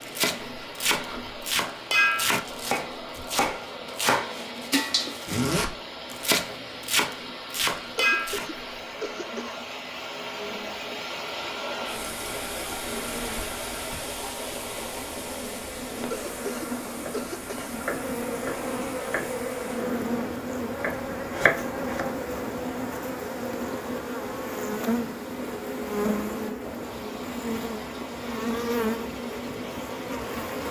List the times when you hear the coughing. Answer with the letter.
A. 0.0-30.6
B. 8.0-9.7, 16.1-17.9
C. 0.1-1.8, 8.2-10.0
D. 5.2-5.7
B.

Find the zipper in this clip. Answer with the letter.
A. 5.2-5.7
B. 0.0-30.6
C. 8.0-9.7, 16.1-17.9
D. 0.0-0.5
A.